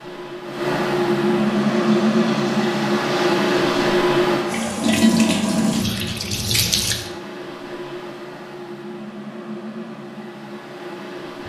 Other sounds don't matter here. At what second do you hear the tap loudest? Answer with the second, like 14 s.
5 s.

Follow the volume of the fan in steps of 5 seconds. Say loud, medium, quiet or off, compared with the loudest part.
loud, quiet, quiet.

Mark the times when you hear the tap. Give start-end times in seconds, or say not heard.
1.6-7.1.